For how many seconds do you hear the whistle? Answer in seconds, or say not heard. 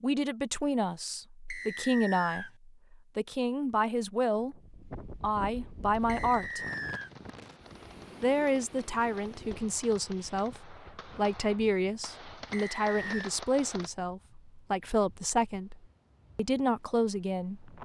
3 s.